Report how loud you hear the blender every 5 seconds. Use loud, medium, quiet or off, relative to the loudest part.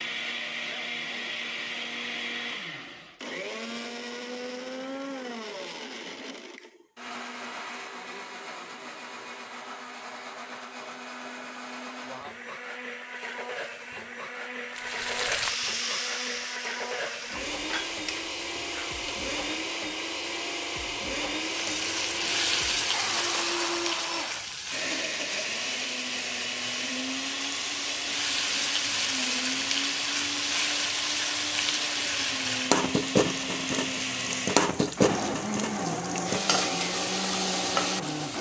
loud, medium, medium, loud, loud, loud, loud, loud.